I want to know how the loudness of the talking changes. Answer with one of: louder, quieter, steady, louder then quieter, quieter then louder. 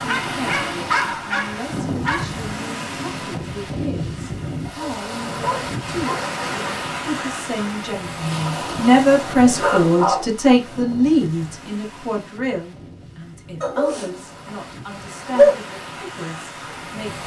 louder then quieter.